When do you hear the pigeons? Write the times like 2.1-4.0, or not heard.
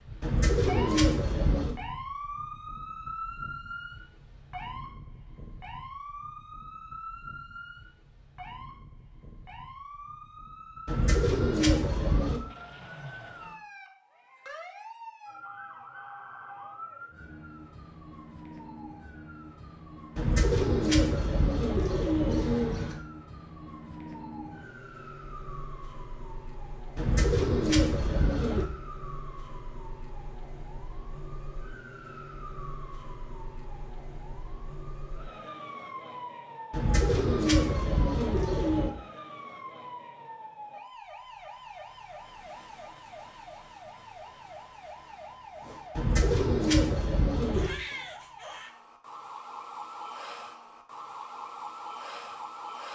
0.2-1.8, 10.8-12.4, 20.1-22.9, 26.9-28.6, 36.7-38.9, 46.0-47.7.